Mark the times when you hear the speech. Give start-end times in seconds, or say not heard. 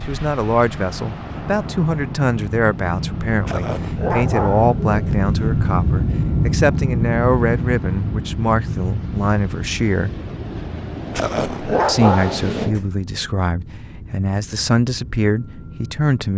0.1-10.2, 11.8-16.3.